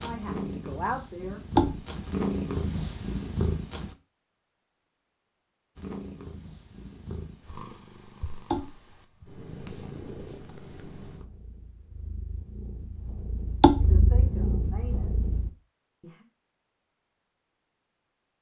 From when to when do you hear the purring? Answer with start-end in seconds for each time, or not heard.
0.0-4.0, 5.8-15.5.